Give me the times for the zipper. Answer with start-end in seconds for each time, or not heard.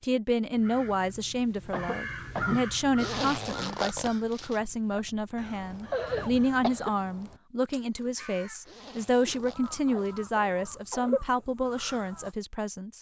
3.0-4.6, 8.6-10.2.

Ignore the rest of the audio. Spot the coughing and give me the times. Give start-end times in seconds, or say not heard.
1.7-2.7, 4.9-6.9, 9.2-11.2.